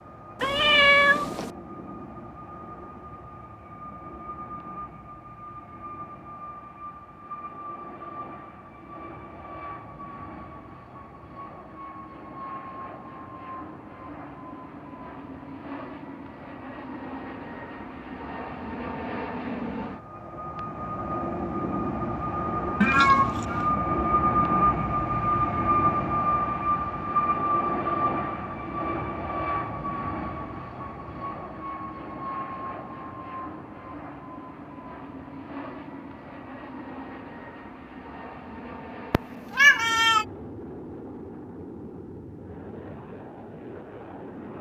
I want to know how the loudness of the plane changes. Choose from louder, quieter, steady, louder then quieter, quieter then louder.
louder then quieter.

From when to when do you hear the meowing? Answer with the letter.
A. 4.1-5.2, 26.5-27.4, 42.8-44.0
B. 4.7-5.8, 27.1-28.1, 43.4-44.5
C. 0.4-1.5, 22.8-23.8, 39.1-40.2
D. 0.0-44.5
C.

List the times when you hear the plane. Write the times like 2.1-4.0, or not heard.
0.0-44.5.